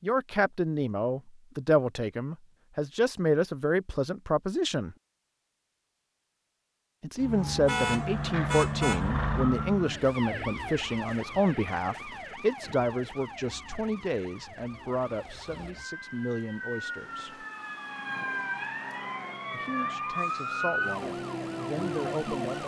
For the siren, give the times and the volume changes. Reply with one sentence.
You can hear the siren from 7.2 to 22.6 s, getting quieter then louder.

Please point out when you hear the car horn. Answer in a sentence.
The car horn can be heard from 7.7 to 9.1 s.